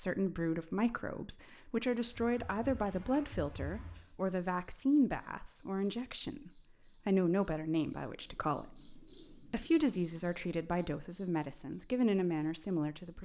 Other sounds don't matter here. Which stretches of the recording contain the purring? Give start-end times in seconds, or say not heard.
not heard.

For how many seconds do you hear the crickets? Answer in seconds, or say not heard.
11 s.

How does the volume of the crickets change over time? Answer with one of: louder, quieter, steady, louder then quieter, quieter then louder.
louder then quieter.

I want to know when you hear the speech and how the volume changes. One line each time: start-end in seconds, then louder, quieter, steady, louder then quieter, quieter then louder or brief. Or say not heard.
0.0-13.1 steady.